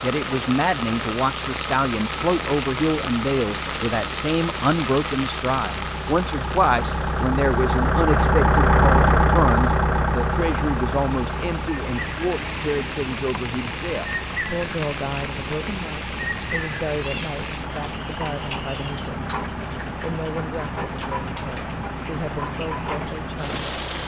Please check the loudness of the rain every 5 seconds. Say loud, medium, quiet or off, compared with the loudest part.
loud, medium, loud, loud, loud.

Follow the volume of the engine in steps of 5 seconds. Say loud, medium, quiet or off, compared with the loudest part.
quiet, loud, medium, quiet, quiet.